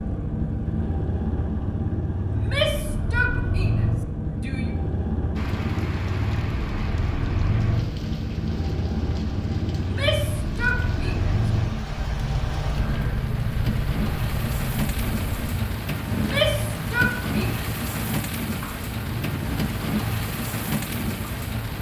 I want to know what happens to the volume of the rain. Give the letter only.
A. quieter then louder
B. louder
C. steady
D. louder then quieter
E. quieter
B.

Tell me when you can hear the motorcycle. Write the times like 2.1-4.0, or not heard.
0.0-21.7.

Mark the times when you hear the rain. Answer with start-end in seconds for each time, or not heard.
5.3-21.7.